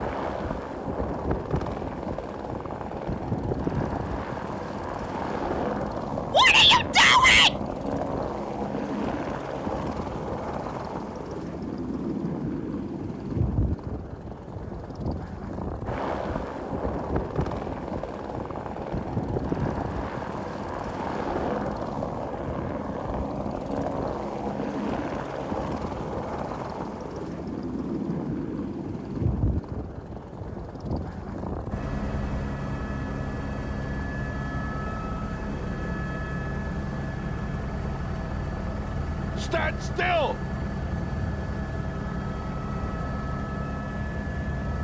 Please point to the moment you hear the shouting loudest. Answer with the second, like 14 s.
7 s.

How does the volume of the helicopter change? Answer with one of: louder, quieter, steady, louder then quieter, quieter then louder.
steady.